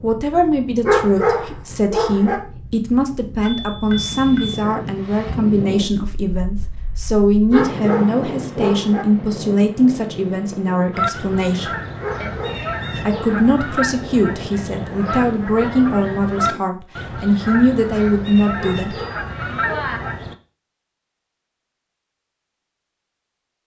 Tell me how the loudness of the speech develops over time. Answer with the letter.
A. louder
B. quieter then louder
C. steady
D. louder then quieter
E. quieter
C.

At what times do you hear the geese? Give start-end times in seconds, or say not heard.
10.9-20.4.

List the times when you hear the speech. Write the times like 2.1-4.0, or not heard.
0.0-11.7, 13.1-18.9.